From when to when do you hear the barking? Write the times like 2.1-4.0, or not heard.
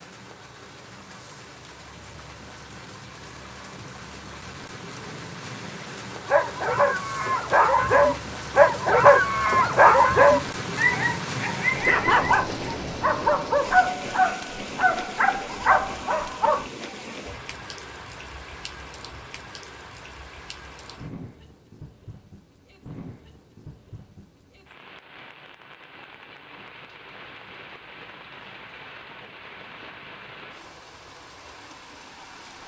6.2-16.6.